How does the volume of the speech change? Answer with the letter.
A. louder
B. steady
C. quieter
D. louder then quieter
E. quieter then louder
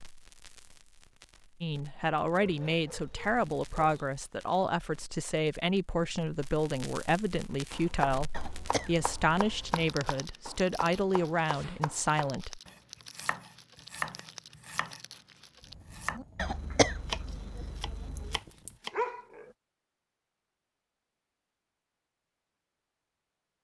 B.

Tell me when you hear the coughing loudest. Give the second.
17 s.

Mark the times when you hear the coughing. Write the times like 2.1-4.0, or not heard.
8.3-9.8, 16.4-18.4.